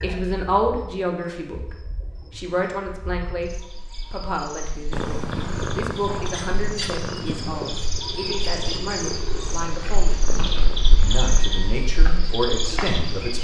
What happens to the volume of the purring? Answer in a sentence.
The loudness of the purring goes down.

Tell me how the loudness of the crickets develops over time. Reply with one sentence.
The volume of the crickets goes up.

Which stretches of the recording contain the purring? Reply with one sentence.
You can hear the purring from 4.9 to 11.4 s.